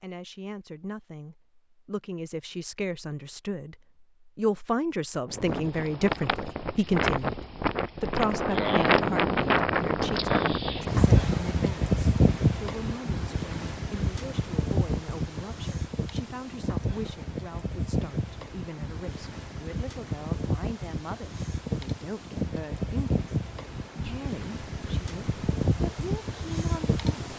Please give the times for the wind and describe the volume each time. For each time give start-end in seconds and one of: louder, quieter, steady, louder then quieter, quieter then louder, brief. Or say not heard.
5.2-27.3 quieter.